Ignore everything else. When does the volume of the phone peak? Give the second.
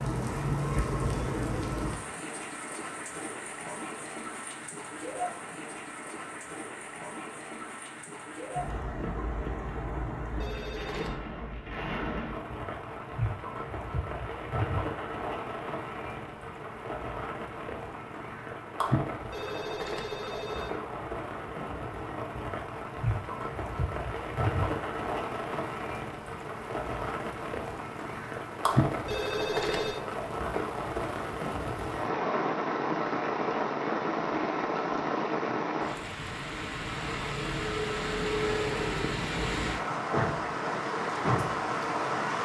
30 s.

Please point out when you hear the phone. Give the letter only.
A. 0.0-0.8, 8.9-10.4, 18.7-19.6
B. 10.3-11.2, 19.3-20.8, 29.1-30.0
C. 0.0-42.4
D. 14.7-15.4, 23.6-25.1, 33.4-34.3
B.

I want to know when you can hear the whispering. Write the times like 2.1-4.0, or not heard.
not heard.